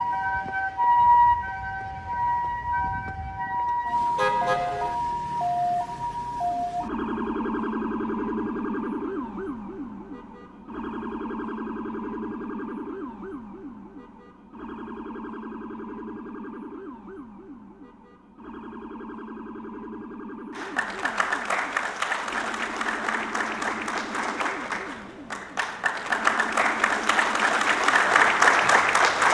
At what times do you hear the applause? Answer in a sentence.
The applause can be heard from 20.5 to 29.2 s.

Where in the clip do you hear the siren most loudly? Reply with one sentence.
The loudest moment of the siren is at 1 second.